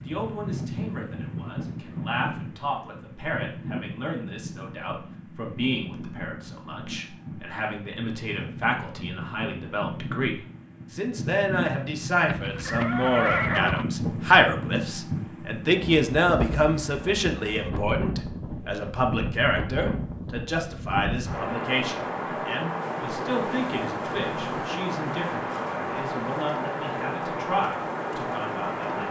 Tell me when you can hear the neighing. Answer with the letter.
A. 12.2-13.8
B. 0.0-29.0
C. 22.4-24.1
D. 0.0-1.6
A.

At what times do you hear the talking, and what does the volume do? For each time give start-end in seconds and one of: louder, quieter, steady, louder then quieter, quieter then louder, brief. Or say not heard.
0.0-29.0 louder then quieter.